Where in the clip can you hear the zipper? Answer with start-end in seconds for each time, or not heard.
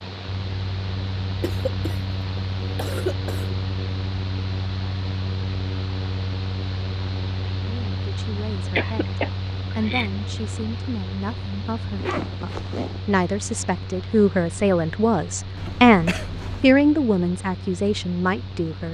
11.9-13.0.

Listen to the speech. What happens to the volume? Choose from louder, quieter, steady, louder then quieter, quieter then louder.
louder.